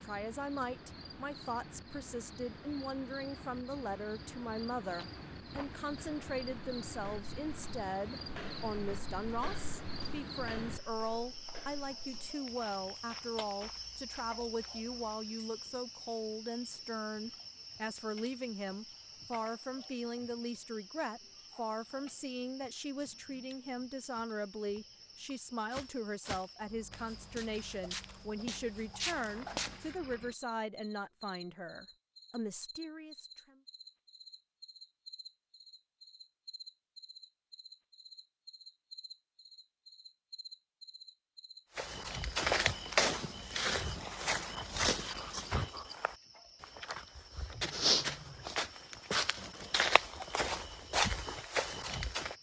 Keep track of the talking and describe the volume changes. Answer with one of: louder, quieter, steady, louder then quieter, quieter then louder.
steady.